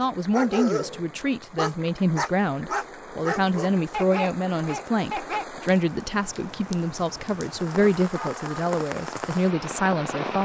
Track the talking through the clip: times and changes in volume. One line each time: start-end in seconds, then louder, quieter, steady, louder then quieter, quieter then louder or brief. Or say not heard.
0.0-10.4 steady.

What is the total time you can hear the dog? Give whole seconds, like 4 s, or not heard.
5 s.